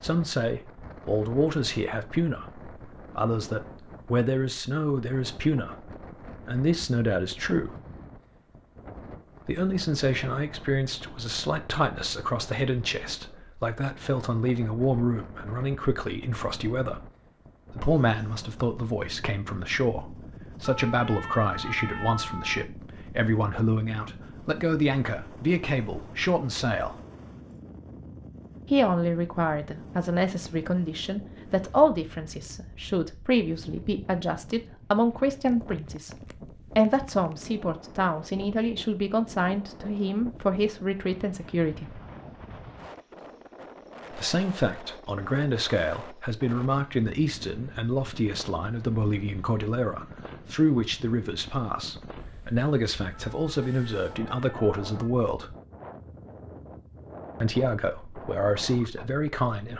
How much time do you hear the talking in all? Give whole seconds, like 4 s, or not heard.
52 s.